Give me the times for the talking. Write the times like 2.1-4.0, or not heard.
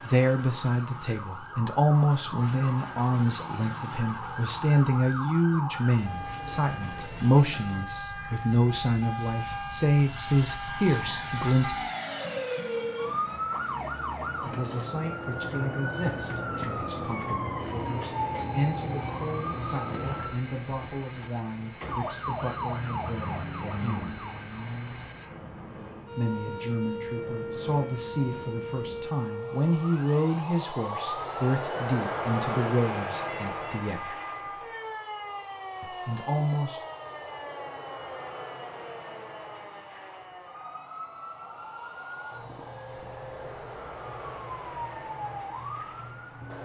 0.1-11.8, 14.4-24.2, 26.1-34.1, 35.8-36.8.